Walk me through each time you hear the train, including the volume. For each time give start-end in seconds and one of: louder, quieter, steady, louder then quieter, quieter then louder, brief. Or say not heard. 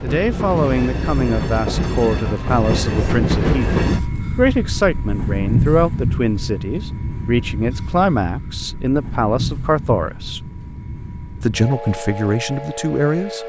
0.0-13.4 quieter.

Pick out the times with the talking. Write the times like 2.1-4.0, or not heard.
0.0-10.5, 11.4-13.4.